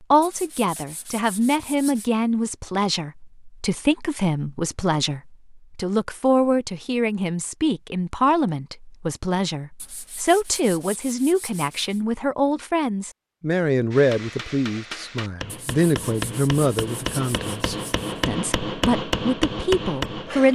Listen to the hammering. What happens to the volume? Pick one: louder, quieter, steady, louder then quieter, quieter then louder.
louder.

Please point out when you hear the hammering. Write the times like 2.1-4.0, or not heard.
13.9-20.4.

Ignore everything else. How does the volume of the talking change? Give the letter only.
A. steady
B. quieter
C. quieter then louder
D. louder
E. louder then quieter
A.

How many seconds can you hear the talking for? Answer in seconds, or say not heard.
20 s.